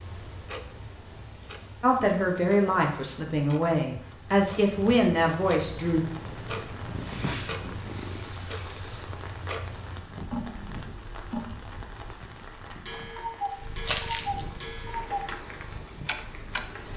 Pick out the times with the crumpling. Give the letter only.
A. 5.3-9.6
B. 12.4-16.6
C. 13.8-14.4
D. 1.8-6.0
C.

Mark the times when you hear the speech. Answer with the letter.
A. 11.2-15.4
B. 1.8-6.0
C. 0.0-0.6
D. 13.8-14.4
B.